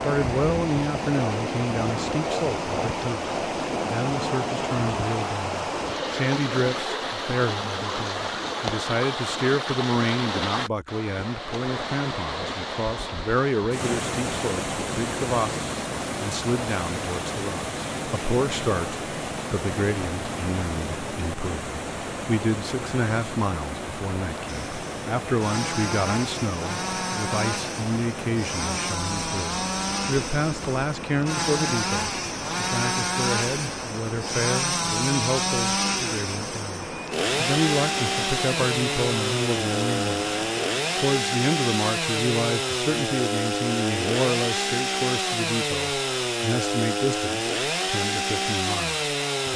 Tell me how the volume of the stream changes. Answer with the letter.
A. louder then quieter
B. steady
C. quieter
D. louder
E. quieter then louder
C.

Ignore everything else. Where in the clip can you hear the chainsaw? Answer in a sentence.
You can hear the chainsaw from 0.0 to 5.3 s and from 24.4 to 49.5 s.